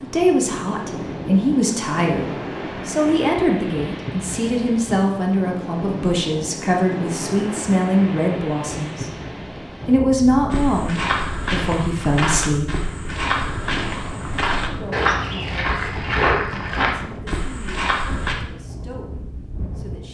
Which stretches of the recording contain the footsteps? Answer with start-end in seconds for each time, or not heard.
10.5-18.4.